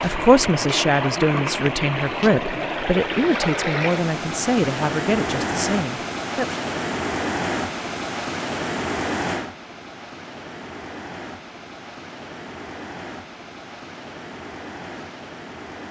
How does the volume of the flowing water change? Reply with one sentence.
The loudness of the flowing water goes down.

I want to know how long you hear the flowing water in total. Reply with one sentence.
You can hear the flowing water for 16 seconds altogether.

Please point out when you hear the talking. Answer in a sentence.
You can hear the talking from 0.0 to 6.6 s.